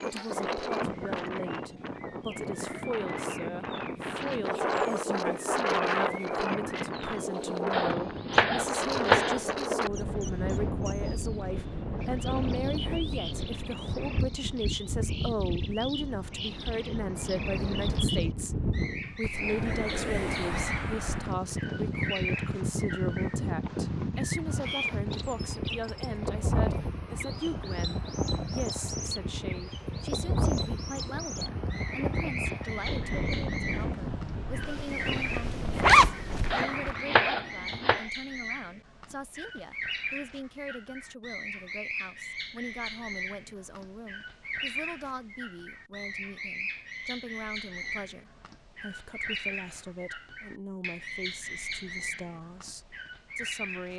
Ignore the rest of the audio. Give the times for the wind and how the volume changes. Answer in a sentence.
The wind can be heard from 0.0 to 37.1 s, at a steady volume.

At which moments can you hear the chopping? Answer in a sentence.
You can hear the chopping from 7.7 to 9.6 s and from 36.5 to 38.0 s.